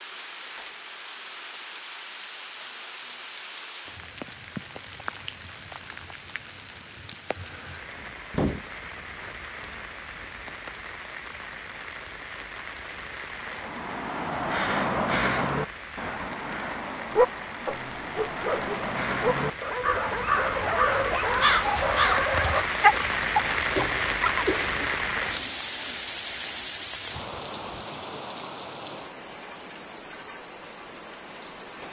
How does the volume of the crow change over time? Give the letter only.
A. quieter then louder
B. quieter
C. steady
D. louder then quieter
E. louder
A.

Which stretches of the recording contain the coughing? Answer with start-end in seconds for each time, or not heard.
23.8-24.9.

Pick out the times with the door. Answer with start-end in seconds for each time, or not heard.
8.0-8.7.